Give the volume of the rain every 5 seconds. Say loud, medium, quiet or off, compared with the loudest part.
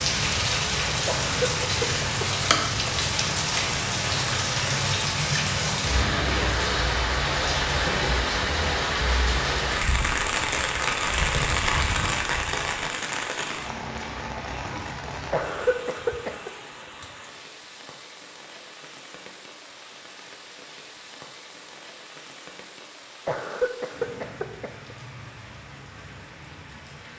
loud, loud, loud, quiet, quiet, quiet.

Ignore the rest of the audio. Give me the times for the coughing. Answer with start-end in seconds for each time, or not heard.
1.1-2.5, 15.3-16.5, 23.2-24.9.